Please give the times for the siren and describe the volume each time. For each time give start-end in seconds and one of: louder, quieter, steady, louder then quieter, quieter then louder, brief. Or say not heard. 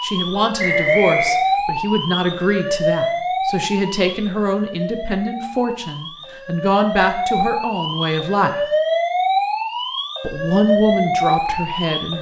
0.0-12.1 quieter then louder.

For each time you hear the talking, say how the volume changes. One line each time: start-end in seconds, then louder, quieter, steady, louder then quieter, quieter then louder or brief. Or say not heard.
0.0-8.7 steady
10.2-12.1 brief.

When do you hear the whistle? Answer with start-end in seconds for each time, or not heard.
0.6-1.4.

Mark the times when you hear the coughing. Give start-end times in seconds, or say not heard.
not heard.